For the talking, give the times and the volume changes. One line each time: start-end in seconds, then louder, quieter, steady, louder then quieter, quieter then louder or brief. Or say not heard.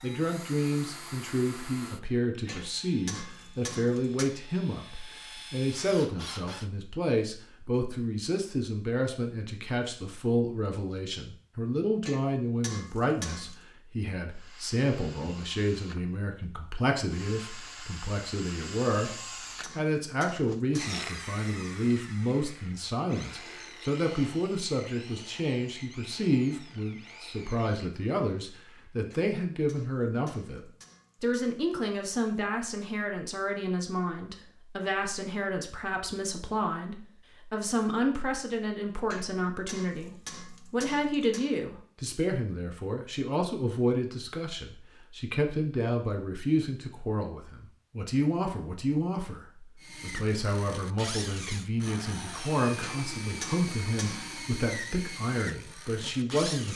0.0-56.7 steady.